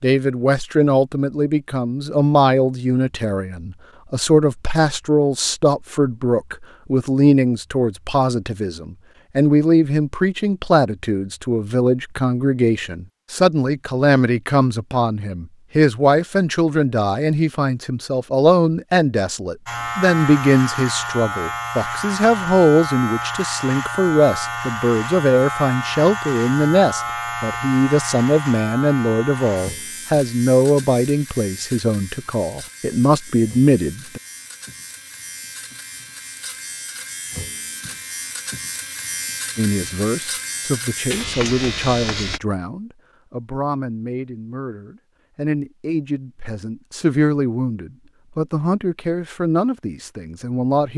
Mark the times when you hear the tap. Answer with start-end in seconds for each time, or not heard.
not heard.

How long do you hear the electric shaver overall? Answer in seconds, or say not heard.
23 s.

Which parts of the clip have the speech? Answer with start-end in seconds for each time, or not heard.
0.0-34.2, 39.5-50.9.